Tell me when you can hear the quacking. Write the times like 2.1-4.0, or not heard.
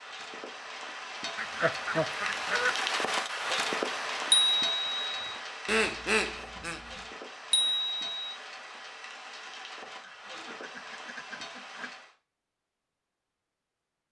1.4-2.8, 5.7-7.0, 10.0-11.9.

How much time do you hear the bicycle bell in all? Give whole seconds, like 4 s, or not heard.
2 s.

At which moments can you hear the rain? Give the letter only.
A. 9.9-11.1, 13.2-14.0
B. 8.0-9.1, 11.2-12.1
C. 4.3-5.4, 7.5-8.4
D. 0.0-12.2
D.